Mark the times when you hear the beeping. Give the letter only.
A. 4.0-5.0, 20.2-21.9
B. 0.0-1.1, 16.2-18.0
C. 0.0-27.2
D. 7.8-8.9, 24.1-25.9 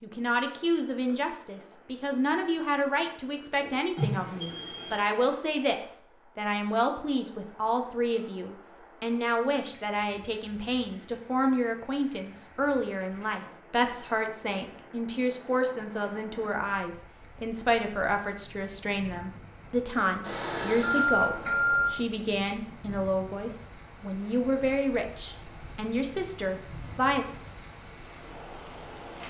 A.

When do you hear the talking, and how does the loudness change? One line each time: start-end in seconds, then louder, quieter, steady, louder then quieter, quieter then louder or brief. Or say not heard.
0.0-27.2 steady.